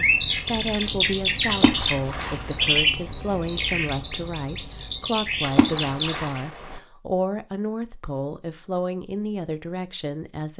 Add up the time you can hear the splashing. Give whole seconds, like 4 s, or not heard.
3 s.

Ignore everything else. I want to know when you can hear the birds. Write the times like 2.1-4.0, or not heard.
0.0-6.4.